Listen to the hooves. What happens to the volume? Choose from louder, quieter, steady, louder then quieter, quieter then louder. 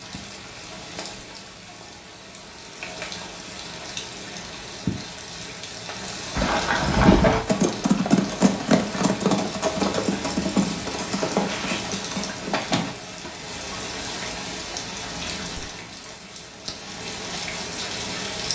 quieter.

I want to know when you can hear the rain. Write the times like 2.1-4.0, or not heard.
0.0-18.5.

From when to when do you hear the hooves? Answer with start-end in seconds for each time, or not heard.
6.3-13.3.